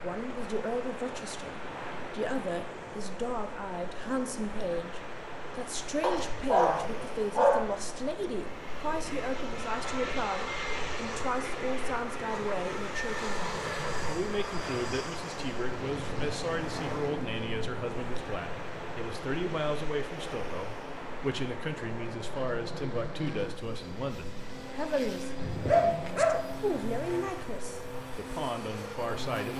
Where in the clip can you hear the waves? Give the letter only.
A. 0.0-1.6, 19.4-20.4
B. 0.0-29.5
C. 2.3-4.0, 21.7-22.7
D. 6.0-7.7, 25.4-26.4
B.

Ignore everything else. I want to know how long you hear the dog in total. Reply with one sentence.
You can hear the dog for 3 seconds altogether.